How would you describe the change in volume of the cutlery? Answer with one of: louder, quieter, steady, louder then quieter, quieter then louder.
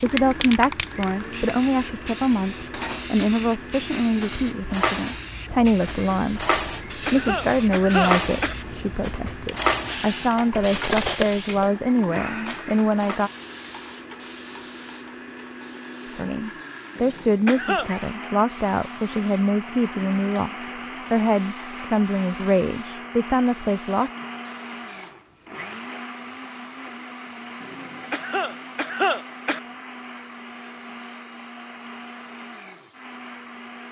louder then quieter.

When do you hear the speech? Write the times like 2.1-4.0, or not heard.
0.0-13.3, 16.1-24.1.